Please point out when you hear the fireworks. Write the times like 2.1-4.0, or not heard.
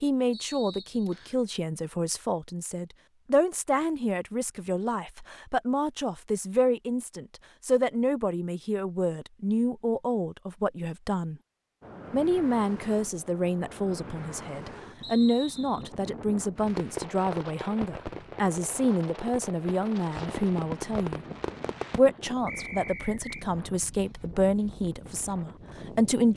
16.6-22.0.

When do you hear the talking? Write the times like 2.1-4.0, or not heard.
0.0-11.4, 12.1-21.2, 21.9-26.3.